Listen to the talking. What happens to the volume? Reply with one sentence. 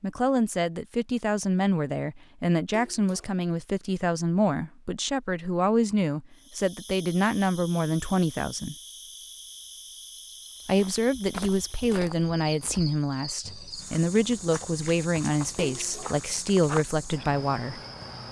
The loudness of the talking stays about the same.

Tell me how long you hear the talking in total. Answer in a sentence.
The talking can be heard for 16 seconds in total.